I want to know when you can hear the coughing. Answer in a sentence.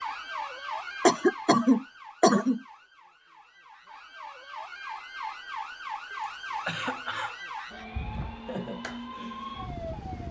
The coughing can be heard from 1.1 to 2.6 s and from 6.7 to 7.3 s.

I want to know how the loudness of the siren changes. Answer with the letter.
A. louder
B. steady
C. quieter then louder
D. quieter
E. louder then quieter
C.